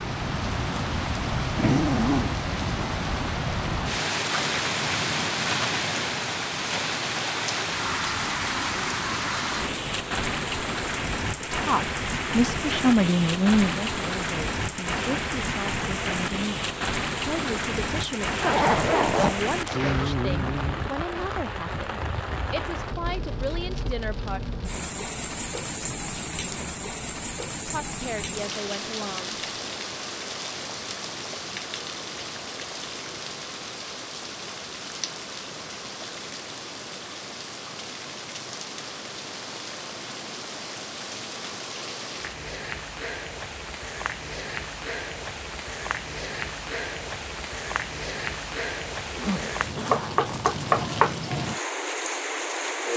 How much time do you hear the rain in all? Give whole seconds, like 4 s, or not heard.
53 s.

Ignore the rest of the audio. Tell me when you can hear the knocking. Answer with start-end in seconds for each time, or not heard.
49.9-51.1.